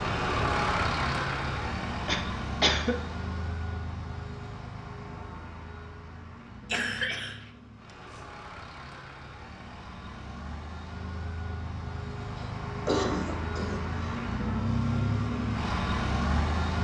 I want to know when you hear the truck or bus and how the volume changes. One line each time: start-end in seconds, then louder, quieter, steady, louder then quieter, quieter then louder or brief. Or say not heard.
0.0-16.8 quieter then louder.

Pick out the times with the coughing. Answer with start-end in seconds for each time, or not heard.
2.0-3.0, 6.7-7.3, 12.3-14.2.